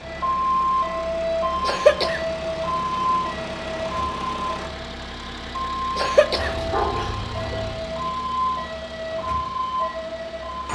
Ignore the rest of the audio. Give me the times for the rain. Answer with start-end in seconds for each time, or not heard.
not heard.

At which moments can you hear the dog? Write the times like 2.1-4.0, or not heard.
6.3-7.8.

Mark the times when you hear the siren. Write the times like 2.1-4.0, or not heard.
0.0-10.7.